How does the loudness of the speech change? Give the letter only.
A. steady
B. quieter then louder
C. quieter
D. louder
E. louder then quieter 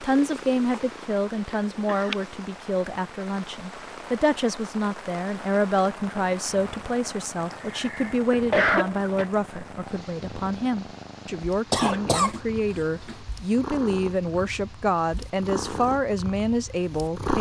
A.